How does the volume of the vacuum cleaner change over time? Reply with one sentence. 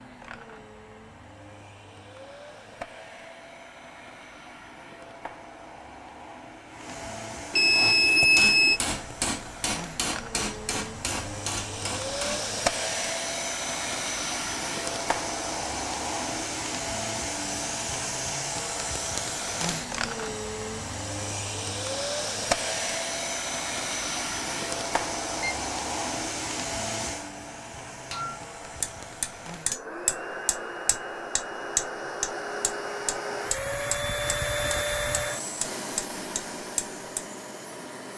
The volume of the vacuum cleaner goes up.